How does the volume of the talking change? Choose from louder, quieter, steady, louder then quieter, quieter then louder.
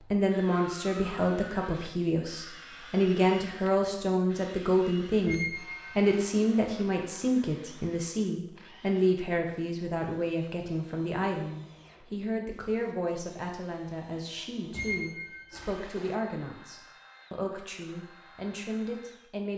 quieter.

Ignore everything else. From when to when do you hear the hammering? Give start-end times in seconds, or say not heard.
not heard.